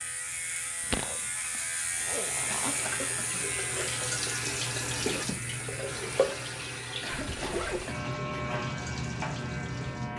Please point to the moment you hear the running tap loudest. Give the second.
5 s.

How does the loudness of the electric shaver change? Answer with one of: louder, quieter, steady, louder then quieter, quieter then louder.
quieter then louder.